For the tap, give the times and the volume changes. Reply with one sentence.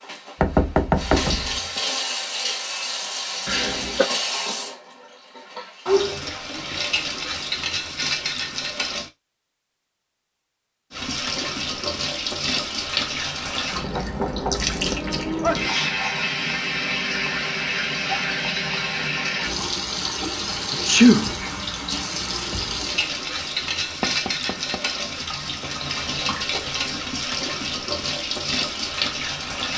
You can hear the tap from 0.0 to 9.1 s, at a steady volume; and from 10.9 to 29.7 s, at a steady volume.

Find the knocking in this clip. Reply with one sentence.
You can hear the knocking from 0.4 to 1.8 s, from 13.9 to 14.6 s and from 24.0 to 24.8 s.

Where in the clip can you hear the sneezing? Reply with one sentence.
The sneezing can be heard from 3.5 to 4.1 s, from 15.4 to 16.0 s and from 20.7 to 21.4 s.